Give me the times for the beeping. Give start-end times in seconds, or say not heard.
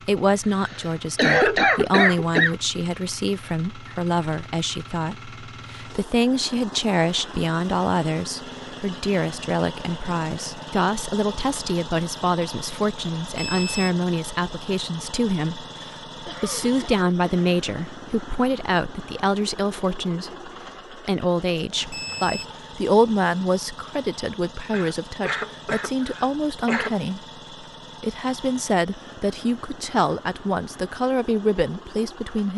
13.3-13.9, 21.9-22.6.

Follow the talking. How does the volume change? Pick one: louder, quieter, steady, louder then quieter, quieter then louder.
steady.